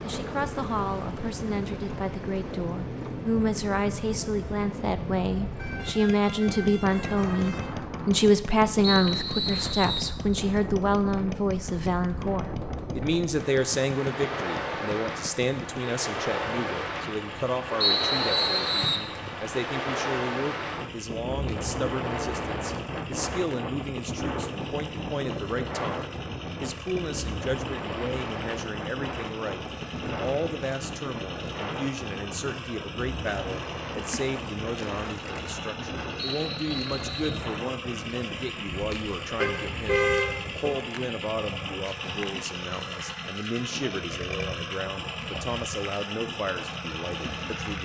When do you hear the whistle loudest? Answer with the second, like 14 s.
18 s.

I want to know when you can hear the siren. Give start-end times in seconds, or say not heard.
not heard.